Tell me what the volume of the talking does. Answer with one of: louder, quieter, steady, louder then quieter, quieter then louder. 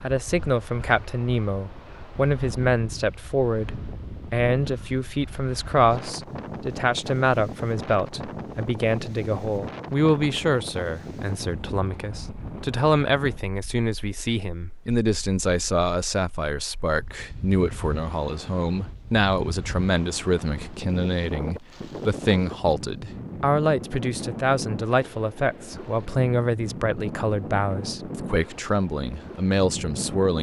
steady.